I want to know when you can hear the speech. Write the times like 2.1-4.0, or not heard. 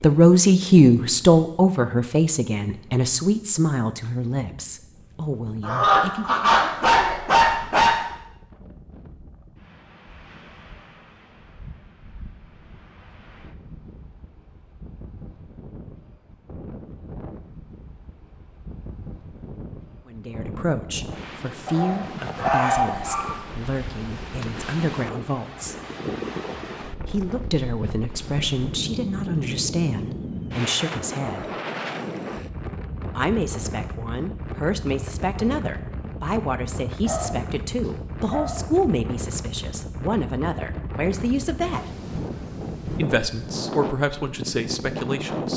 0.0-6.5, 20.1-25.8, 27.1-31.5, 33.1-41.9, 43.0-45.5.